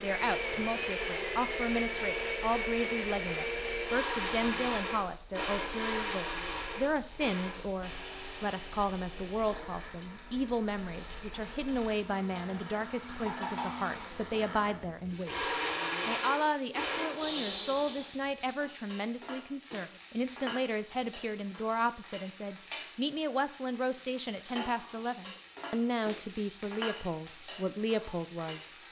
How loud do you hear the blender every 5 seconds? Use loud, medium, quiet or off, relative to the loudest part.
loud, medium, medium, loud, off, off.